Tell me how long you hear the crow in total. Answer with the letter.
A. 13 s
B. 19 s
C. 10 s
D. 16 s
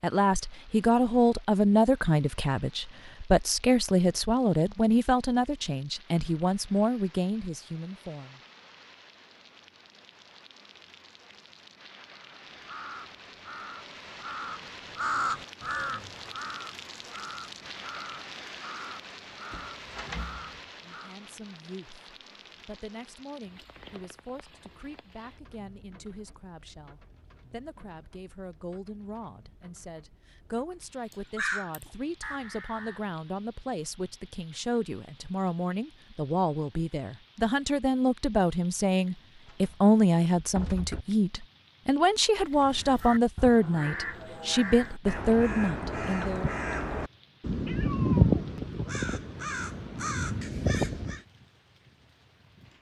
B.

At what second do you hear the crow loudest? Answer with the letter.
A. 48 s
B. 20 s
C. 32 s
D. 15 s
A.